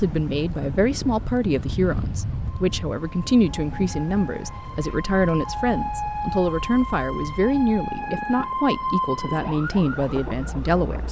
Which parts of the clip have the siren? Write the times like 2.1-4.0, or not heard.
0.0-11.0.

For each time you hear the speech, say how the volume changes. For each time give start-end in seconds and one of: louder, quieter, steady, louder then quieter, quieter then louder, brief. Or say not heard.
0.0-11.0 steady.